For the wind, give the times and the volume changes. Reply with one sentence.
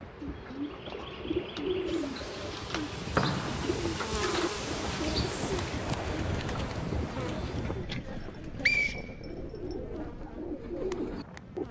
The wind can be heard from 0.0 to 11.6 s, getting louder then quieter.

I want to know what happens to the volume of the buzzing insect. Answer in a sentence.
The loudness of the buzzing insect goes up, then down.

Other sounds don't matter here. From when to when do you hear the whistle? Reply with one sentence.
The whistle can be heard from 3.1 to 3.8 s and from 8.1 to 9.8 s.